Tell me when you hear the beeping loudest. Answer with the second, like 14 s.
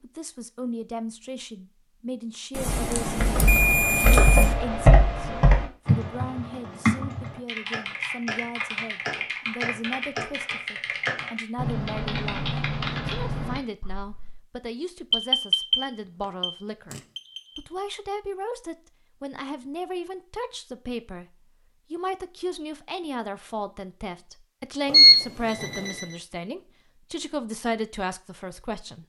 25 s.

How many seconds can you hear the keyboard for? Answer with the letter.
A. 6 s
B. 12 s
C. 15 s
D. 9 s
B.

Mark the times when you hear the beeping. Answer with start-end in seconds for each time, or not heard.
2.5-4.5, 15.1-17.6, 24.9-26.1.